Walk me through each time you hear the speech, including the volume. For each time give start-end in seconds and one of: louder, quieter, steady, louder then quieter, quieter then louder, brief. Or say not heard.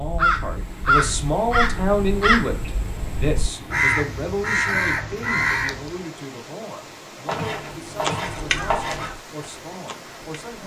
0.0-10.6 quieter.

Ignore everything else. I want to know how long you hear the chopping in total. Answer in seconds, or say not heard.
2 s.